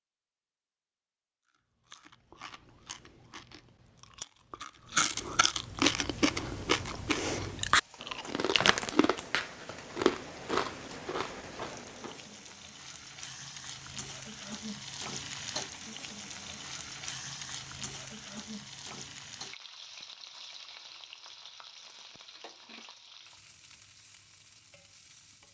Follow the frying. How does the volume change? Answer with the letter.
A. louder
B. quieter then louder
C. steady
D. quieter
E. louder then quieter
E.